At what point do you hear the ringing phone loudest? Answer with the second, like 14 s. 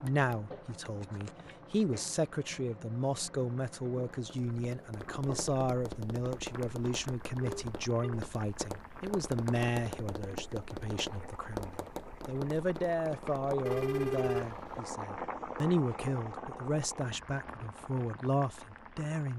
14 s.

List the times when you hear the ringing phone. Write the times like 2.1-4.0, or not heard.
0.1-1.6, 7.4-8.2, 13.7-14.8.